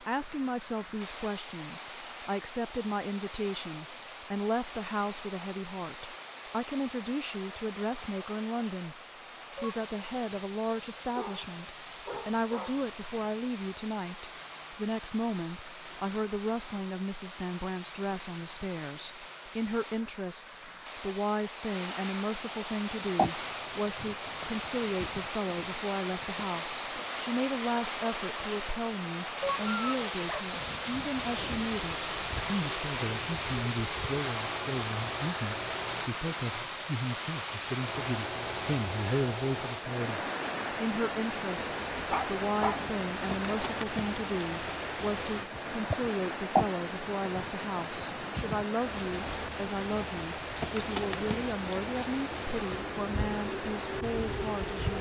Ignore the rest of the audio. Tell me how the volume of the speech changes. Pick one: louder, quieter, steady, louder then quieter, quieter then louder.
steady.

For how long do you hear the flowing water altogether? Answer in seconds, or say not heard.
55 s.